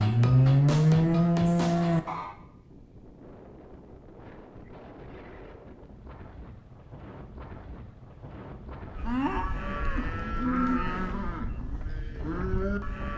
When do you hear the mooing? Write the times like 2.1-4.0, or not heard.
0.0-2.3, 8.9-13.1.